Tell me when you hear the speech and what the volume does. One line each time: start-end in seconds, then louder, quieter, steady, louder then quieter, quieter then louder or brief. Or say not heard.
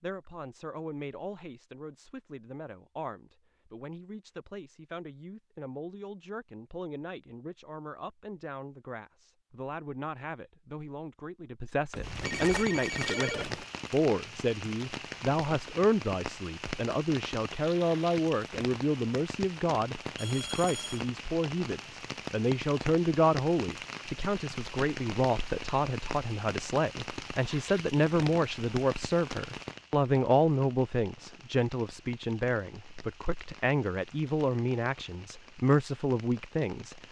0.0-37.0 louder.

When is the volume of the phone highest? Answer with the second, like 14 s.
13 s.